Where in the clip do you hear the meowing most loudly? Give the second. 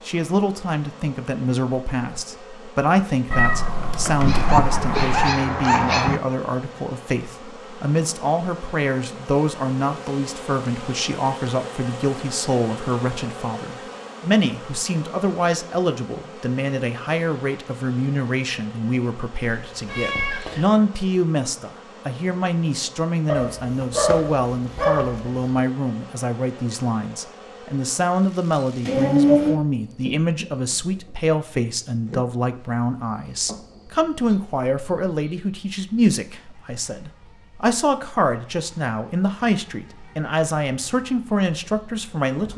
29 s.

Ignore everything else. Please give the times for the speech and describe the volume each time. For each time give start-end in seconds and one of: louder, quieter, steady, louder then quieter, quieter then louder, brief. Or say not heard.
0.1-42.5 steady.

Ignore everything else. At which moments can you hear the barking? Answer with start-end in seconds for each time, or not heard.
4.2-6.2, 23.2-25.4.